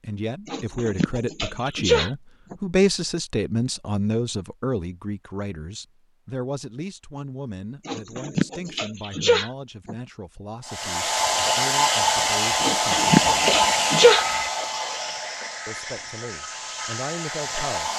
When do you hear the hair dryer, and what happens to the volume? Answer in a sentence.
The hair dryer can be heard from 10.7 to 17.9 s, getting quieter.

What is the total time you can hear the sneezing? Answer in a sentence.
The sneezing can be heard for 6 seconds in total.